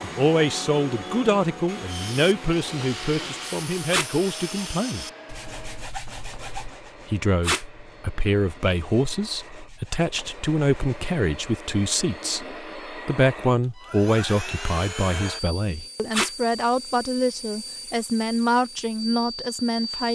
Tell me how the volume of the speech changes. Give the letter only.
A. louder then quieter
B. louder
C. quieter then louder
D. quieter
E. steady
E.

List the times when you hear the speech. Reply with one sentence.
The speech can be heard from 0.0 to 5.0 s and from 7.1 to 20.1 s.